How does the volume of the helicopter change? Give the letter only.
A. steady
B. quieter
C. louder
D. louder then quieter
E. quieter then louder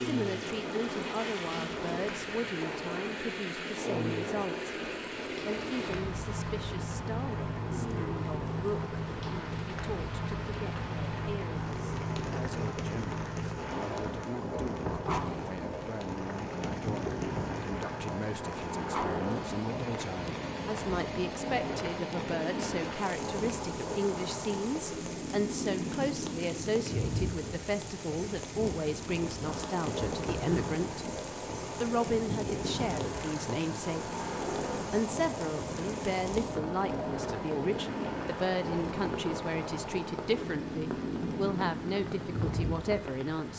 A.